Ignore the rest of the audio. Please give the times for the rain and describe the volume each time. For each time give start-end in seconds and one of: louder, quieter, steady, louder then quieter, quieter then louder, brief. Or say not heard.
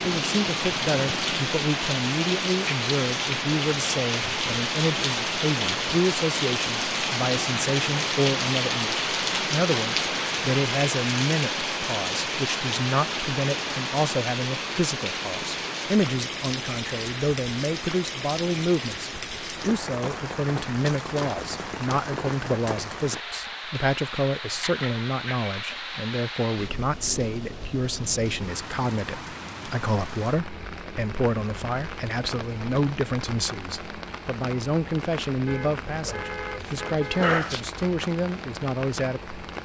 0.0-39.6 quieter.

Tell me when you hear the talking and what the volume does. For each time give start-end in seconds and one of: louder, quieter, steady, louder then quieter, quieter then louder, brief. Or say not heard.
0.0-39.4 steady.